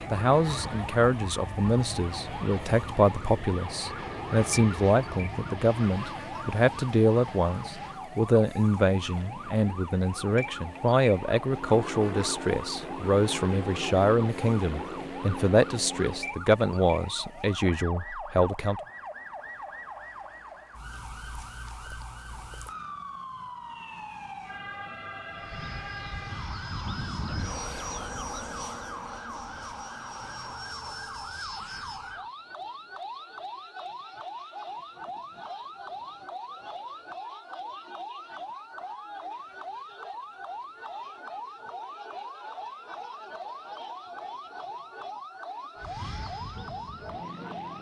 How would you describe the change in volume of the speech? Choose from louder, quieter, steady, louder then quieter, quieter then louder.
steady.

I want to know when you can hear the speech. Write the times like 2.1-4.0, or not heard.
0.1-18.8.